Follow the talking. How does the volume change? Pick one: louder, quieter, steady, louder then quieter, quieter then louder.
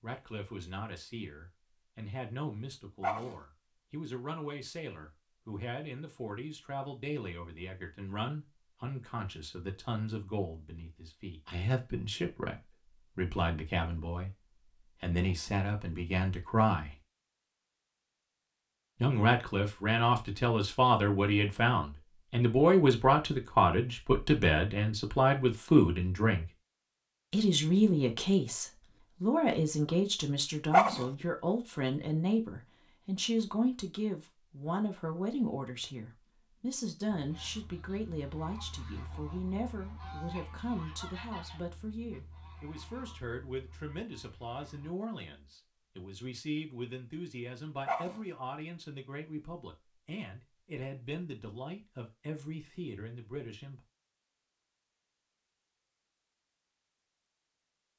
louder then quieter.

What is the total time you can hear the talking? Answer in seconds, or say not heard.
51 s.